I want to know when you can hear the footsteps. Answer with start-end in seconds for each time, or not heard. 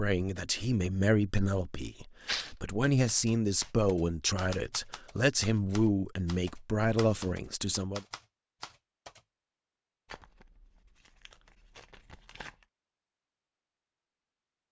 not heard.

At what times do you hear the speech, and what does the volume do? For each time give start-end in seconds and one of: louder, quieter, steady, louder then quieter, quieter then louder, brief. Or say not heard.
0.0-8.1 steady.